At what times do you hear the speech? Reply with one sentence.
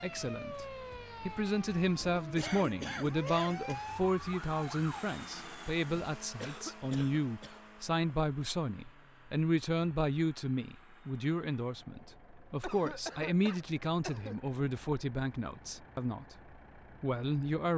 You can hear the speech from 0.0 to 17.7 s.